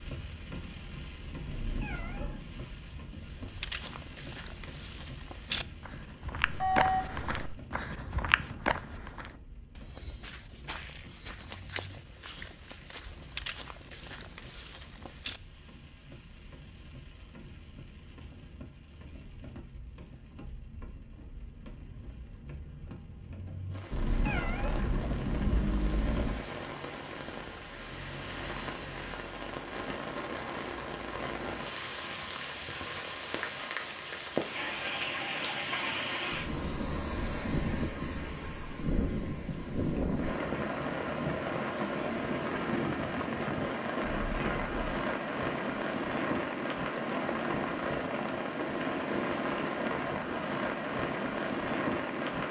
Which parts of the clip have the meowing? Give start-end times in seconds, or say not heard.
1.4-2.5, 23.9-26.4, 44.2-44.9.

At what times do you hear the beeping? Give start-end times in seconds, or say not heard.
6.4-7.5.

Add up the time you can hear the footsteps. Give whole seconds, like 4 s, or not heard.
12 s.